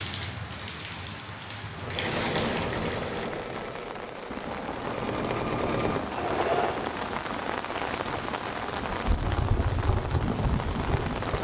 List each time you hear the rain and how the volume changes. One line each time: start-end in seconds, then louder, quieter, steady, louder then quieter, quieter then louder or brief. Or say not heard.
0.0-11.3 louder.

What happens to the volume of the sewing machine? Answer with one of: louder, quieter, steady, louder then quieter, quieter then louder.
quieter then louder.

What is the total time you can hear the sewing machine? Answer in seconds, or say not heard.
5 s.